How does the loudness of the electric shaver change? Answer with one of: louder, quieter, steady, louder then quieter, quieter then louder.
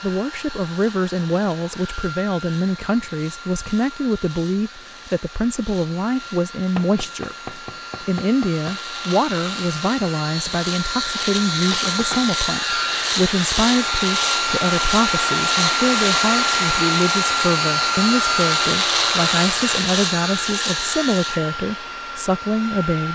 louder.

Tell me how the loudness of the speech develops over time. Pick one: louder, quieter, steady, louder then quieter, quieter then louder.
steady.